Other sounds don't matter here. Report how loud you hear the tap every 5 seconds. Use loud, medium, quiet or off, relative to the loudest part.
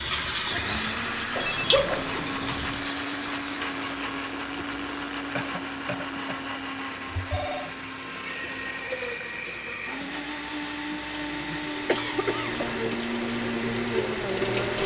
loud, quiet, loud.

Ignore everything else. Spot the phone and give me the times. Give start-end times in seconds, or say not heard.
1.4-2.9, 7.1-7.7, 12.4-12.9.